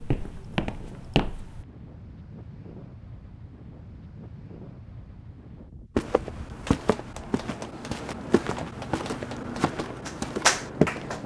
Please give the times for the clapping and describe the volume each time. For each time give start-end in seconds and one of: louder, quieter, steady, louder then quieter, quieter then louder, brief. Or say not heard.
6.7-11.2 quieter then louder.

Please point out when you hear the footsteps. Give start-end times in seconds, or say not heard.
0.0-1.6, 6.0-11.2.